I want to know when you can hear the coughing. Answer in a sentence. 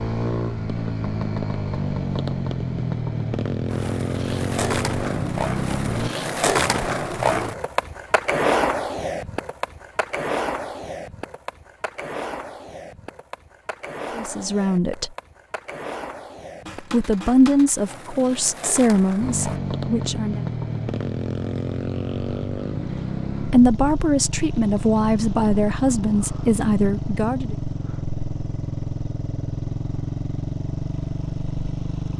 You can't hear the coughing here.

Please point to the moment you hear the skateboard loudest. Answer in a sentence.
The loudest moment of the skateboard is at 7 seconds.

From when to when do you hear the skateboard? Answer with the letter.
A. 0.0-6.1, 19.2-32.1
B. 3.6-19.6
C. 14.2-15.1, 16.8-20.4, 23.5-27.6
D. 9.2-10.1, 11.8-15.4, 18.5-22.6
B.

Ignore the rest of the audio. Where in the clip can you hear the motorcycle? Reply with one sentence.
You can hear the motorcycle from 0.0 to 6.1 s and from 19.2 to 32.1 s.